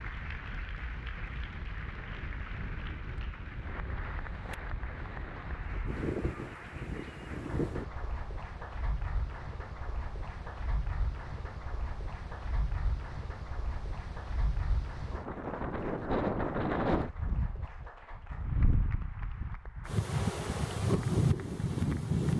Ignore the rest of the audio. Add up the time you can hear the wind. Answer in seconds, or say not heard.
22 s.